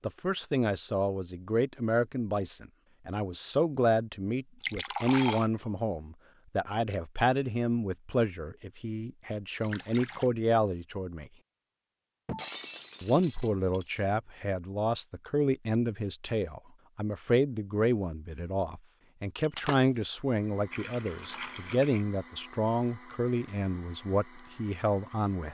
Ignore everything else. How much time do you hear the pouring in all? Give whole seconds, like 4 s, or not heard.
3 s.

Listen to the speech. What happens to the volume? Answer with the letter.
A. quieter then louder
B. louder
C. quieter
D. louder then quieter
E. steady
E.